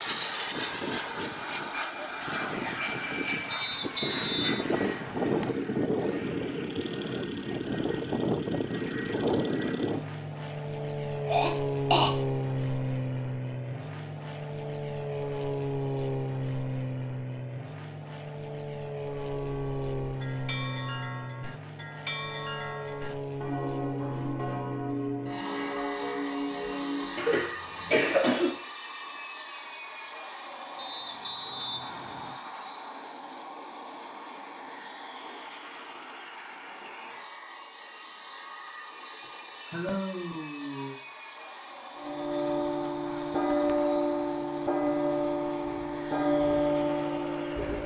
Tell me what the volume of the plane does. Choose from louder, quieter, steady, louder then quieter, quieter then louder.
quieter.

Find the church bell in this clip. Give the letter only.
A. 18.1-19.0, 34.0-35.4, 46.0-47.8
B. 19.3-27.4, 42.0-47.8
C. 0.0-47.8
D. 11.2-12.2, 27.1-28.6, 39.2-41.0
B.